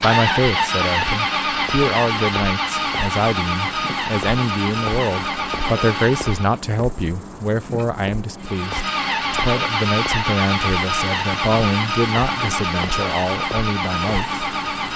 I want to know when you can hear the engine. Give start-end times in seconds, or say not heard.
0.0-6.6, 8.4-14.9.